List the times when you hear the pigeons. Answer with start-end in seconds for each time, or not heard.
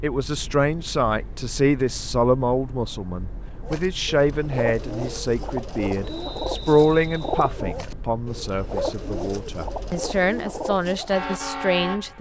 3.6-11.3.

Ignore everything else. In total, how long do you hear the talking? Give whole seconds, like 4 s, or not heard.
12 s.